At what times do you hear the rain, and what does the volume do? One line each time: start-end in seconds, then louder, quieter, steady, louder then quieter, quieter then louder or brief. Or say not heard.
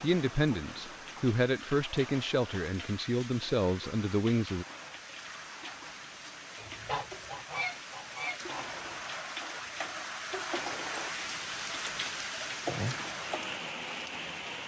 0.0-14.6 louder.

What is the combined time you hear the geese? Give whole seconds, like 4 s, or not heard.
2 s.